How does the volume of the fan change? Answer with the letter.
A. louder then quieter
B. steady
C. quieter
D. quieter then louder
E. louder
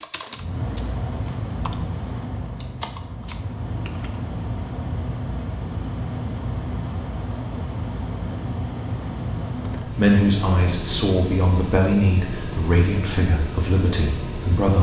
B.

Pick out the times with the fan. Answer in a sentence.
You can hear the fan from 0.0 to 14.7 s.